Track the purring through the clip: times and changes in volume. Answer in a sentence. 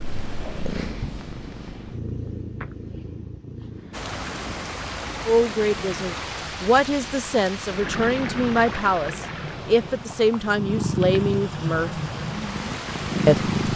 The purring can be heard from 0.0 to 13.7 s, getting quieter then louder.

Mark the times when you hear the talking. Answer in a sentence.
You can hear the talking from 5.2 to 11.9 s and from 13.2 to 13.7 s.